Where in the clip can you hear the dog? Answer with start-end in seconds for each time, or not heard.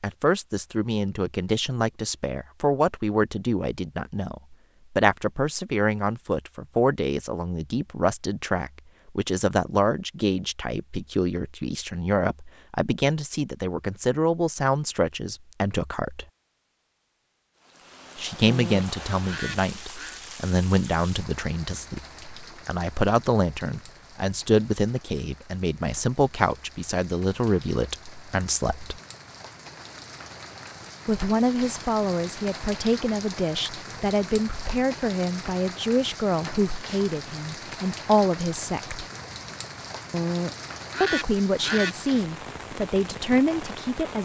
not heard.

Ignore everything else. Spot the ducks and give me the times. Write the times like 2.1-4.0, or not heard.
18.4-20.2, 40.1-42.0.